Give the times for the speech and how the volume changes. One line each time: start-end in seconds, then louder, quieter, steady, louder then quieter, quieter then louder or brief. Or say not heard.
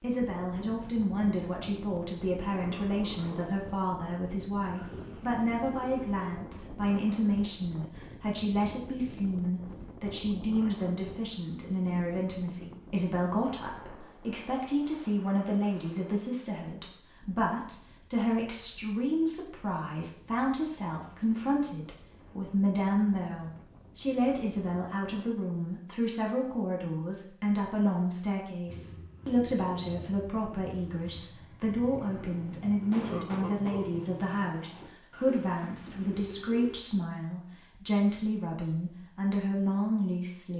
0.0-40.5 steady.